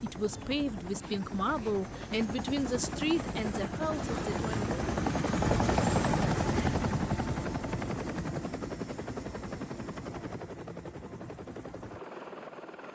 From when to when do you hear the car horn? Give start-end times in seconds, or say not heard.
not heard.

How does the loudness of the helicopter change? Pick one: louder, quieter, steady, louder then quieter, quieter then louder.
louder then quieter.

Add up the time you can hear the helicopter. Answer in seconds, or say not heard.
13 s.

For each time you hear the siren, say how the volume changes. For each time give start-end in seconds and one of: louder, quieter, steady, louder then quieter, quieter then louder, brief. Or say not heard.
not heard.